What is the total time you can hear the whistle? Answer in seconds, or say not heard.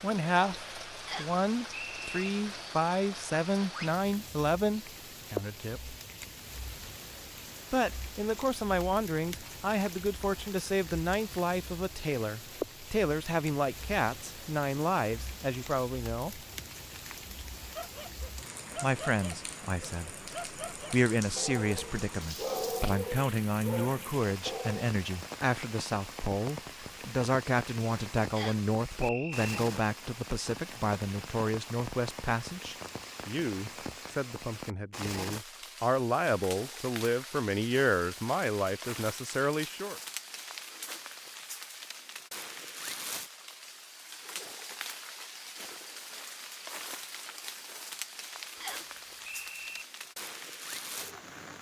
4 s.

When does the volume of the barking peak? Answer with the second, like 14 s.
23 s.